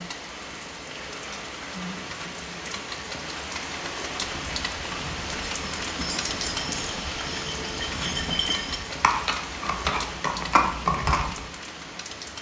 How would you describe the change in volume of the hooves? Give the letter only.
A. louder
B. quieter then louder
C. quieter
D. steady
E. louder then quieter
A.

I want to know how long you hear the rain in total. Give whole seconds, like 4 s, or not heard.
12 s.